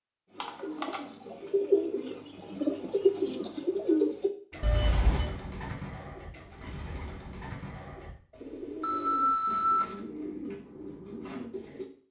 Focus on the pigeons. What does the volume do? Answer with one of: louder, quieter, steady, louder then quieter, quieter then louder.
quieter.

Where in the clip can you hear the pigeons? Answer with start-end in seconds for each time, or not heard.
0.3-11.9.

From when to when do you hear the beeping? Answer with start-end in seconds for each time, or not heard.
0.4-1.0, 4.6-5.3, 8.8-9.9.